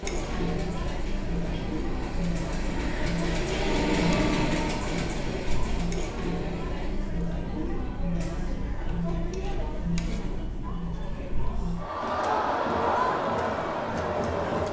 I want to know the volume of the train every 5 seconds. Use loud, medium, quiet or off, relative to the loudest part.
loud, medium, off.